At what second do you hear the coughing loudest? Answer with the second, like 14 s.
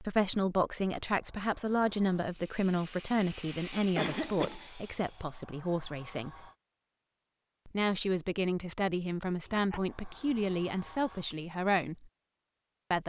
4 s.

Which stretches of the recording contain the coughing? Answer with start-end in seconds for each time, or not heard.
4.0-4.6, 9.5-10.3.